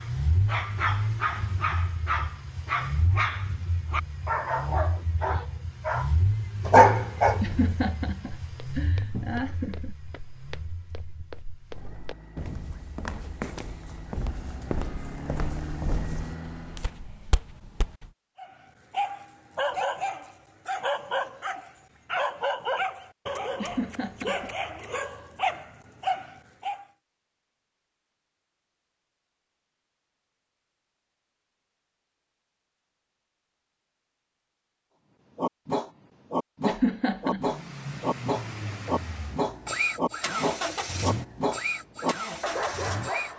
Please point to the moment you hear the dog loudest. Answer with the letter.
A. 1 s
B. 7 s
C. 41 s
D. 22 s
B.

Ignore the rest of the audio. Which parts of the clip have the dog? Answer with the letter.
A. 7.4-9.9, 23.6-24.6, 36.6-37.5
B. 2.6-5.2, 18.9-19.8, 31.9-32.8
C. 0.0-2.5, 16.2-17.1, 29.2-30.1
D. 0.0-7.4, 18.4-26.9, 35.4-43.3
D.